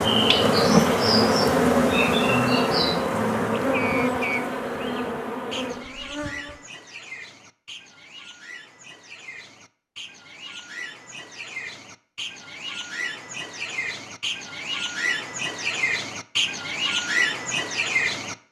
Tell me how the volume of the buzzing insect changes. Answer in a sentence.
The loudness of the buzzing insect goes down.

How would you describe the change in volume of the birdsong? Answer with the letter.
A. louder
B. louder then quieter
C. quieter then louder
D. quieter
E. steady
C.